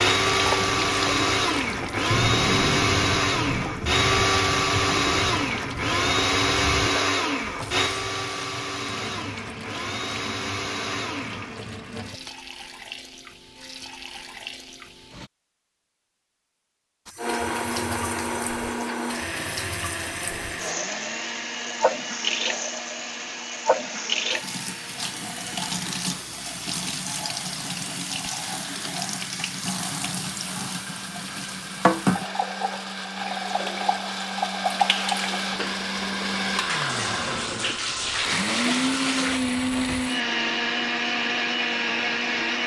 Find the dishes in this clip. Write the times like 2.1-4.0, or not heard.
not heard.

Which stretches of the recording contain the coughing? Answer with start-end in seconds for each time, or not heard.
not heard.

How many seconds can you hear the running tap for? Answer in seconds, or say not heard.
38 s.